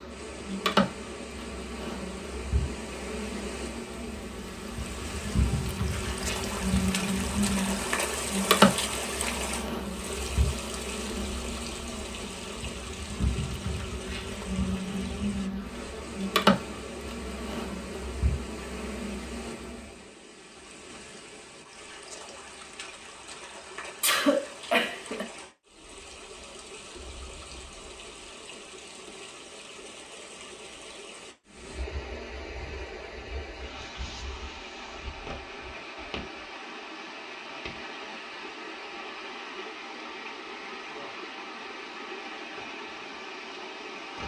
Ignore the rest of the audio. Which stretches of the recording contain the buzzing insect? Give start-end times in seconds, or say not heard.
0.0-19.9.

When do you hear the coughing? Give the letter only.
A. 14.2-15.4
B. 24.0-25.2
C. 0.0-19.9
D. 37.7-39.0
B.